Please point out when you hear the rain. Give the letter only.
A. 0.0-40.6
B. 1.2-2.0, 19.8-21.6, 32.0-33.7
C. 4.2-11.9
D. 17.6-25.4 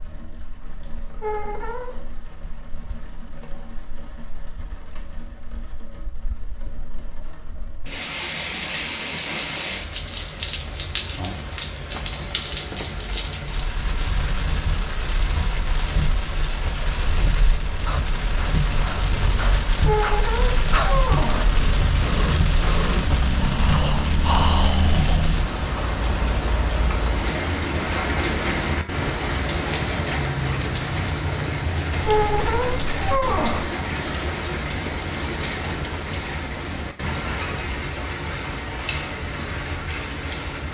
A.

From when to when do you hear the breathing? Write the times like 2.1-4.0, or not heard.
17.6-25.4.